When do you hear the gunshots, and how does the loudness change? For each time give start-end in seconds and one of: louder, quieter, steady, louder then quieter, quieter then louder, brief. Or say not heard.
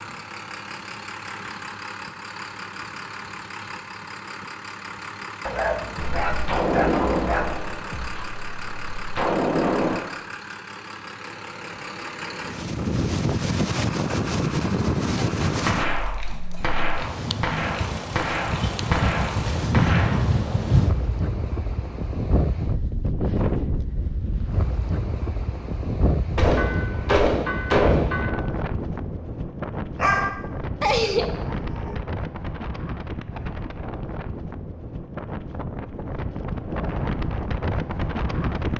6.0-10.0 quieter then louder
15.7-20.3 steady
26.4-28.3 brief.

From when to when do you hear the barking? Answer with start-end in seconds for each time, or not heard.
5.5-7.7, 29.9-31.9.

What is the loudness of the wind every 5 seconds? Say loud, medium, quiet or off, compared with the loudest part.
off, off, loud, loud, loud, medium, medium, medium.